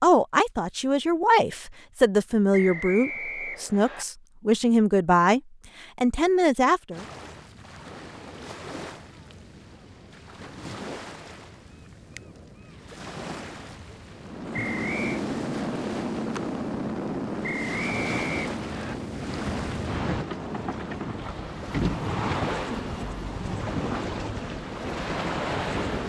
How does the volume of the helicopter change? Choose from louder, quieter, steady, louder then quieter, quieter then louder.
quieter.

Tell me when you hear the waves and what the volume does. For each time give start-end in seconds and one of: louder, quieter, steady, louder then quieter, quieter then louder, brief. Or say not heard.
6.9-26.0 louder.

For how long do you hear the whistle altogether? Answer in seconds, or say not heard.
4 s.